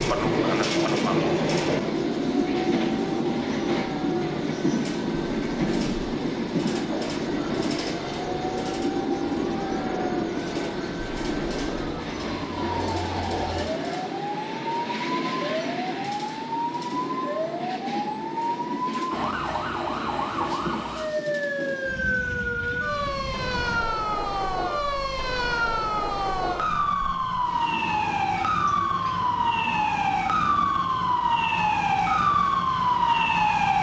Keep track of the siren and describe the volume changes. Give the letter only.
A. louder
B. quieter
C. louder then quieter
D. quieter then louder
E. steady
A.